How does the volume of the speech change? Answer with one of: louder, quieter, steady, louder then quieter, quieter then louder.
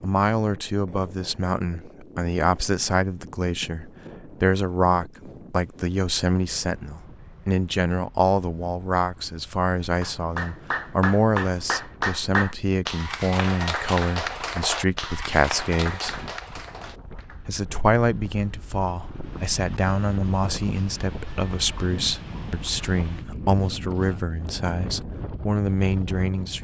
steady.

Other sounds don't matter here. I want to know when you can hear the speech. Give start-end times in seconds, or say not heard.
0.0-16.2, 17.4-26.6.